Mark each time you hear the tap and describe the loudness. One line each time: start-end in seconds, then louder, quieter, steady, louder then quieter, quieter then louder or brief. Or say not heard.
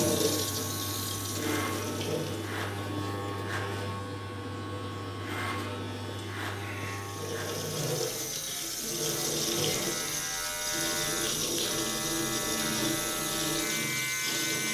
0.0-14.6 quieter then louder.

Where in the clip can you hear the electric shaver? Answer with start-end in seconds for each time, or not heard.
0.0-14.6.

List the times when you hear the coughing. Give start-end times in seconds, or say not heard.
6.5-7.2.